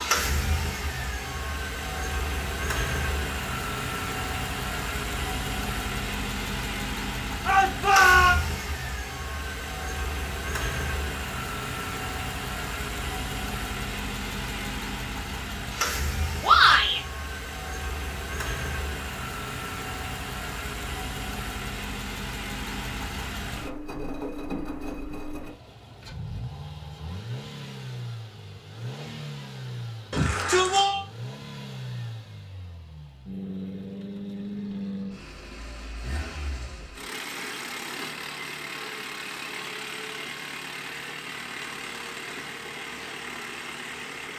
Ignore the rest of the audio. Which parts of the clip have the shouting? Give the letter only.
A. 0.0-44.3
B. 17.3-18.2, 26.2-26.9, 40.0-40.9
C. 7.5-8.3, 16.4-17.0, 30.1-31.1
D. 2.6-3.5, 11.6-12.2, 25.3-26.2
C.